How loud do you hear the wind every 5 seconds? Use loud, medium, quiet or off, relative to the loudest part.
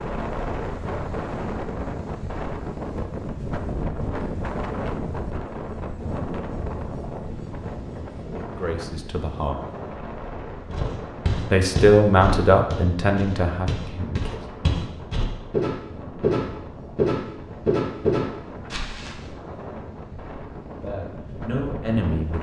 loud, loud, medium, medium, medium.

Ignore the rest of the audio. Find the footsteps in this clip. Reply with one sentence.
You can hear the footsteps from 10.7 to 19.1 s.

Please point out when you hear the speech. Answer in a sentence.
The speech can be heard from 8.6 to 9.6 s, from 11.5 to 14.4 s and from 20.8 to 22.3 s.